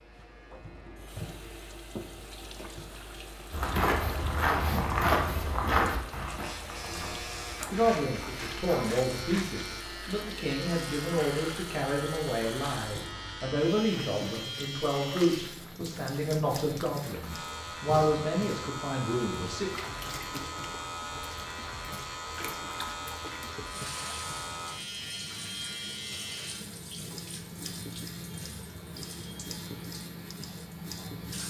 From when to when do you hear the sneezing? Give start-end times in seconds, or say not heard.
not heard.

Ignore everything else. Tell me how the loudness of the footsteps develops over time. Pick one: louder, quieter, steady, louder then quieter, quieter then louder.
quieter.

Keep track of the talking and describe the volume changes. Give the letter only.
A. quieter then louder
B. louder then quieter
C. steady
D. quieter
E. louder
C.